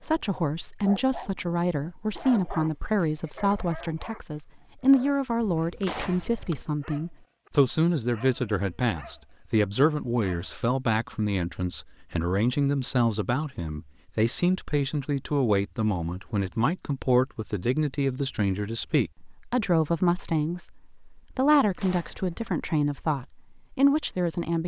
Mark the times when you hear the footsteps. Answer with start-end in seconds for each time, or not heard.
not heard.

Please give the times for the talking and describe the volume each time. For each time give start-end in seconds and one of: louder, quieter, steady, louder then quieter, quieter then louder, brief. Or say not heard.
0.0-24.6 steady.